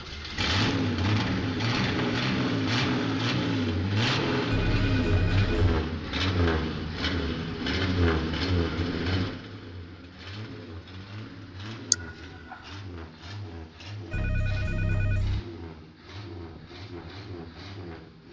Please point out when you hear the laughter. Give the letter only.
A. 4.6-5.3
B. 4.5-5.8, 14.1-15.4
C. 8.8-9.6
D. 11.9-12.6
D.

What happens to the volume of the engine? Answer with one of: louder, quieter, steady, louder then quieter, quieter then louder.
quieter.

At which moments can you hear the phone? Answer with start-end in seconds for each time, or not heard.
4.5-5.8, 14.1-15.4.